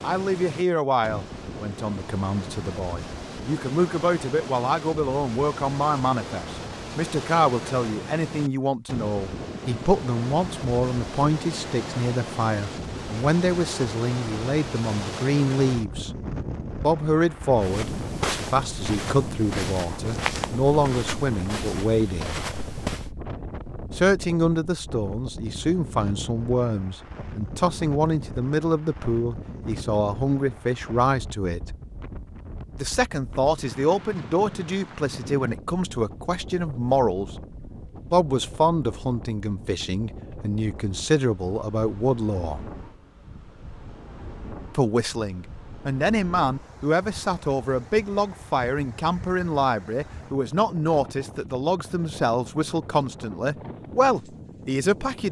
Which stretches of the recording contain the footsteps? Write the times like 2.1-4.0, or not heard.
17.6-23.1.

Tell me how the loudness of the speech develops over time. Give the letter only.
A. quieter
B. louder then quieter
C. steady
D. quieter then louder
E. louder
C.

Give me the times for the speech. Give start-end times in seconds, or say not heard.
0.0-16.1, 16.8-22.4, 23.9-31.8, 32.8-37.3, 38.1-42.6, 44.8-55.2.